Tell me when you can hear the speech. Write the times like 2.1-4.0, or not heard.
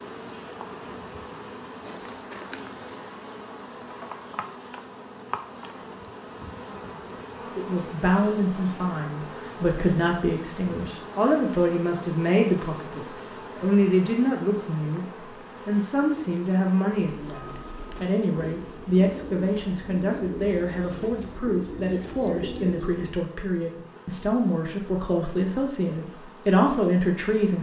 7.5-27.5.